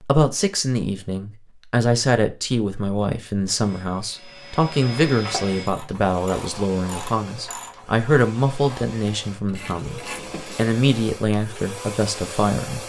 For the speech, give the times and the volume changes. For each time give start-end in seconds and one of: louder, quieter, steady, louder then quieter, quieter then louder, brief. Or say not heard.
0.0-12.8 steady.